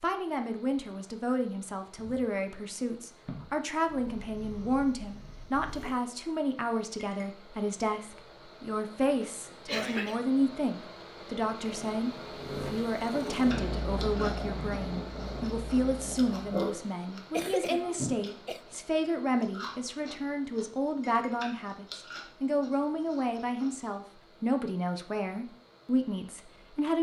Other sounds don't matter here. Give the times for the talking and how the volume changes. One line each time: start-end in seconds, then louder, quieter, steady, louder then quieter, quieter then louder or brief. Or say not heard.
0.0-26.9 steady.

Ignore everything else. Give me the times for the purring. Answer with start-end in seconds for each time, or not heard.
1.8-6.0, 11.6-16.6.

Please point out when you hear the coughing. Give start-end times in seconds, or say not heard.
9.2-10.2, 17.3-18.6.